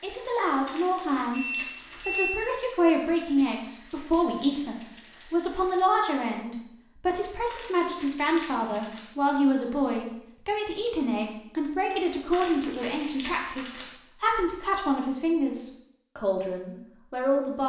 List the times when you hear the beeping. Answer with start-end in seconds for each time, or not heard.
1.3-2.4.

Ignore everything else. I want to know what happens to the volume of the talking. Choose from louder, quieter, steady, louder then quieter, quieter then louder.
steady.